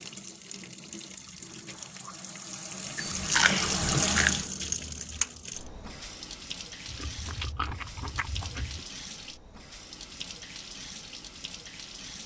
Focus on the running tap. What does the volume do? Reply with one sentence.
The volume of the running tap goes up, then down.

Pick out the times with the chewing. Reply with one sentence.
The chewing can be heard from 3.0 to 4.5 s and from 6.8 to 8.8 s.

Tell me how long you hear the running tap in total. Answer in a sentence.
The running tap can be heard for 12 seconds in total.